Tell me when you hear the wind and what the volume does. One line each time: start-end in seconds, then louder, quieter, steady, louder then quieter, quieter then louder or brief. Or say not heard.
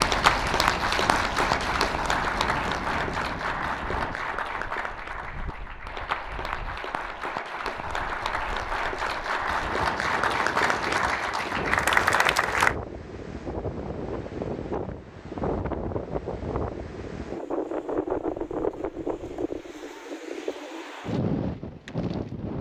0.0-22.5 quieter then louder.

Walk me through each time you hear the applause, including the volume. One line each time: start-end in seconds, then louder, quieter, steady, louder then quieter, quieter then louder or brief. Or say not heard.
0.0-12.8 quieter then louder.